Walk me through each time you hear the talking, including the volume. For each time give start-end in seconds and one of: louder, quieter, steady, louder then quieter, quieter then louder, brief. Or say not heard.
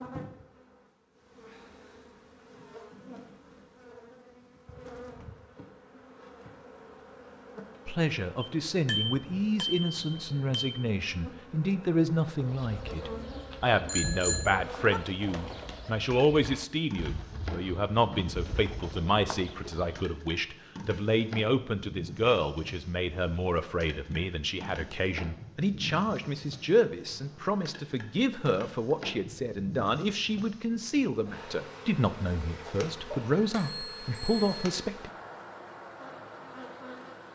7.8-35.1 steady.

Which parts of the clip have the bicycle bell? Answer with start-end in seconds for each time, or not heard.
8.4-10.8, 13.8-15.0, 33.1-34.9.